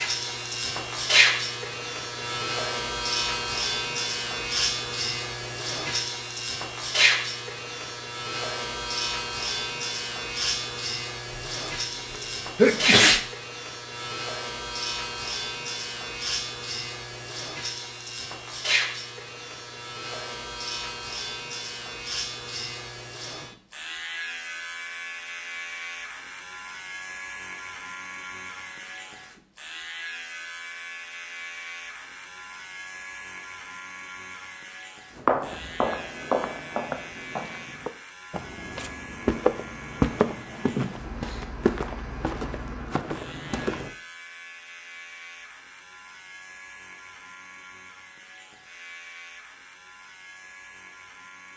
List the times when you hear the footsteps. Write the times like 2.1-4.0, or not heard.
35.1-43.9.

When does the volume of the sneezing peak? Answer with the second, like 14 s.
13 s.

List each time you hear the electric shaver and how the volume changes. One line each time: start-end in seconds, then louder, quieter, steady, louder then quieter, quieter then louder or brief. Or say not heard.
0.0-51.5 quieter.